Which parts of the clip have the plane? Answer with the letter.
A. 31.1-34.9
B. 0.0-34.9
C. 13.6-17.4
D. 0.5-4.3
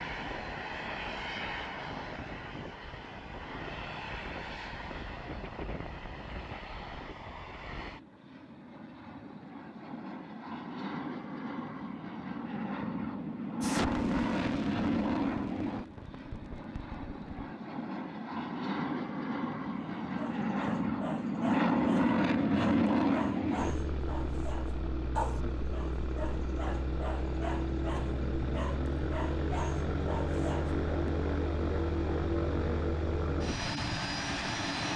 B.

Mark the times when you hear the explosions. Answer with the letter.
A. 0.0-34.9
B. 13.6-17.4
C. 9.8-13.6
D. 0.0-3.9
B.